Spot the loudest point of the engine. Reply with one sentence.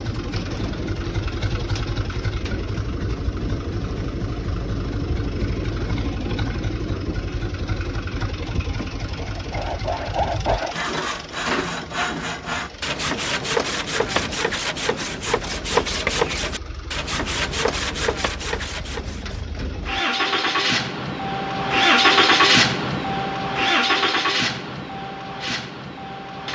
The volume of the engine peaks at 22 seconds.